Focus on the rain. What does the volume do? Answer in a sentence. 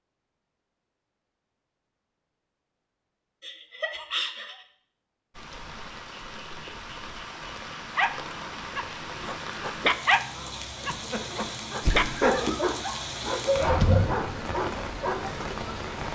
The loudness of the rain goes up.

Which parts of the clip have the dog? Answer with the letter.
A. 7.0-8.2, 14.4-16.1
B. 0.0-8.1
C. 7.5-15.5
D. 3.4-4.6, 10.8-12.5
C.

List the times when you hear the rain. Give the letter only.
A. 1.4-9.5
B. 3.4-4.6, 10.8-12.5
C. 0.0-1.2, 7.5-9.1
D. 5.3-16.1
D.